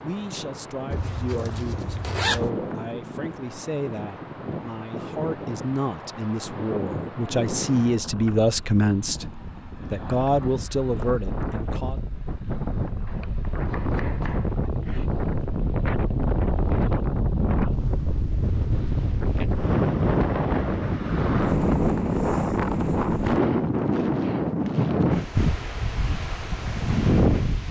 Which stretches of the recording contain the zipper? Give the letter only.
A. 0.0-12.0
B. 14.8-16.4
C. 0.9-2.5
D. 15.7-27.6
C.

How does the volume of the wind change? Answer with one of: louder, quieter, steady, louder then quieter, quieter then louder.
louder.